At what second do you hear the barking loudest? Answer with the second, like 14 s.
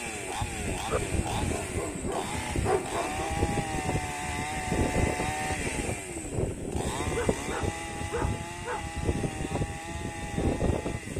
3 s.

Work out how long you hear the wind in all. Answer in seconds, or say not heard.
11 s.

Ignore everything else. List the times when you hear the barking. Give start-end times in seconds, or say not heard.
0.8-3.4, 7.2-8.8.